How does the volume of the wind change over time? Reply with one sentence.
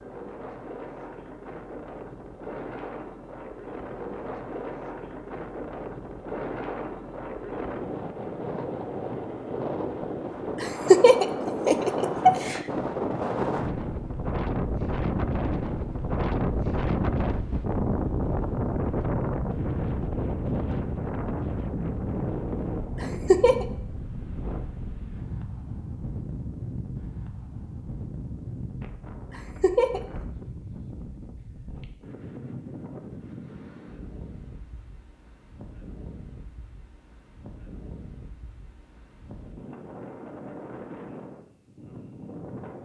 The volume of the wind goes up, then down.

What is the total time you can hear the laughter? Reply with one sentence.
The laughter can be heard for 3 seconds in total.